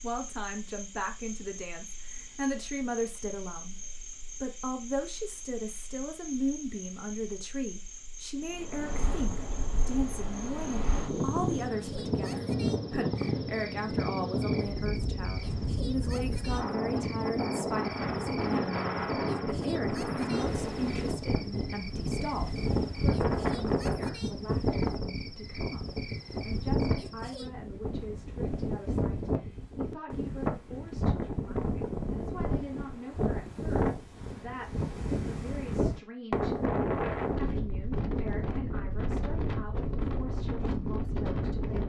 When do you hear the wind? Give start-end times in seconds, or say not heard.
8.4-41.8.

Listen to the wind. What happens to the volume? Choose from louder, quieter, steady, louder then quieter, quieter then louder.
steady.